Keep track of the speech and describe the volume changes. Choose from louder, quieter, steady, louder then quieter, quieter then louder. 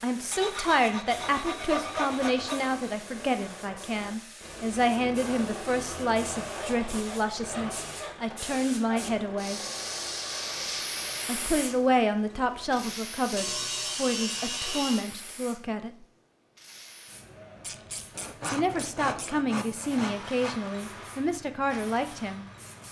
steady.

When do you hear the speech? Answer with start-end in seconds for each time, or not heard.
0.0-9.6, 11.2-16.1, 18.5-22.4.